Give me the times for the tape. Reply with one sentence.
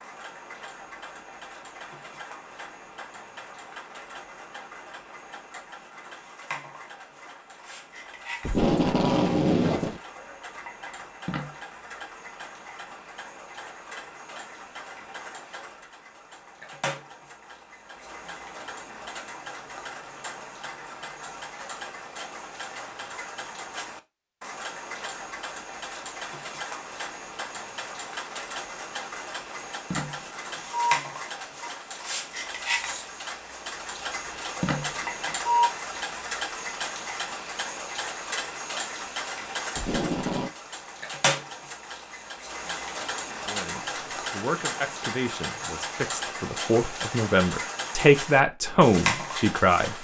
The tape can be heard from 8.4 to 10.0 s and from 39.8 to 40.5 s.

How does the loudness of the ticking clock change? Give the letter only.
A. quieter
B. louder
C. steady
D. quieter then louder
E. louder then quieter
B.